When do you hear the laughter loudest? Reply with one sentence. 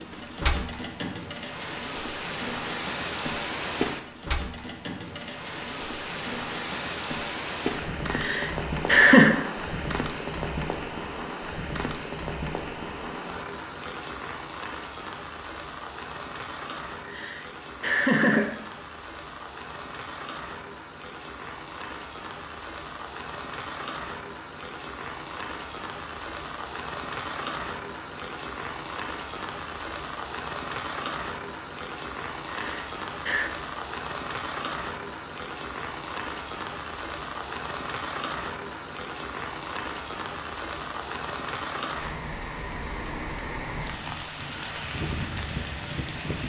The loudest moment of the laughter is at 9 seconds.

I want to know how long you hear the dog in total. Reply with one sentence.
The dog can't be heard in this clip.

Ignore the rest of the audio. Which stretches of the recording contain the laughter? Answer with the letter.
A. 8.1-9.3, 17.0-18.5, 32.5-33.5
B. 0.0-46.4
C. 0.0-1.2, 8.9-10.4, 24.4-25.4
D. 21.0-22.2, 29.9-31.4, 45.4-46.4
A.